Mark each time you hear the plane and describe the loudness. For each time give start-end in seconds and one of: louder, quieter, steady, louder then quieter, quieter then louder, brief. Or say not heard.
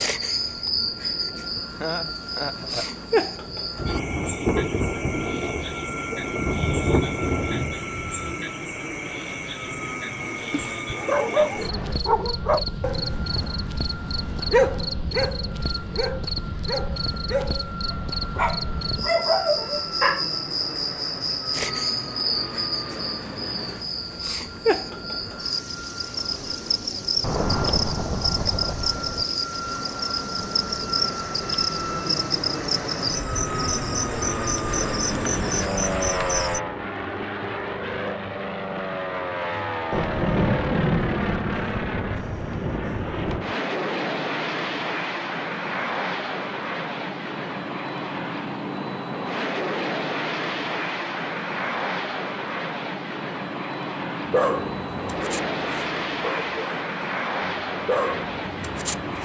0.0-59.1 louder.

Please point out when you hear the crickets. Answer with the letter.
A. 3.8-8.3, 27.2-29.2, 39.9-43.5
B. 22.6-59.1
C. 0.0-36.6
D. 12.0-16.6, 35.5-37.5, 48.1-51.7
C.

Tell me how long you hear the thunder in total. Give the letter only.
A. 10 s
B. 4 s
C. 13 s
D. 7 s
A.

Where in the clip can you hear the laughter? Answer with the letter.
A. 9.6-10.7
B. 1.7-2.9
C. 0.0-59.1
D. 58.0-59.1
B.